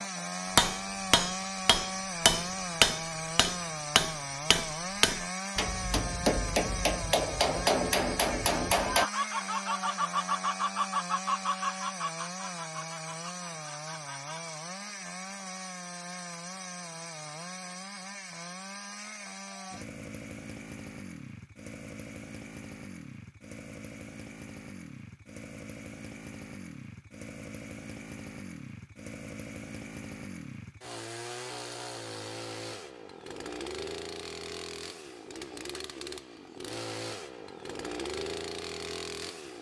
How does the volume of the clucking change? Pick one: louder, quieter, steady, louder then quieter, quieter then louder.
quieter.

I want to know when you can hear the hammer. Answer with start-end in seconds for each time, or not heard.
0.6-9.1.